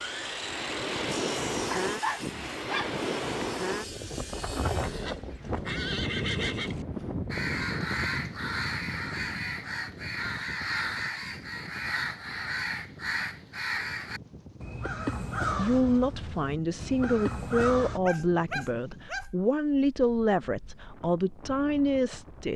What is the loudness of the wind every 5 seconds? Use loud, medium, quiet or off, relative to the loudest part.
loud, loud, quiet, quiet, quiet.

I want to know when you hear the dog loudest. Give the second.
2 s.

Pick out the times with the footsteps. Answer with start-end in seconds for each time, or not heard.
not heard.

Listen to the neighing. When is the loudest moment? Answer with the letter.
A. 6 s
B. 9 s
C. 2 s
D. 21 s
A.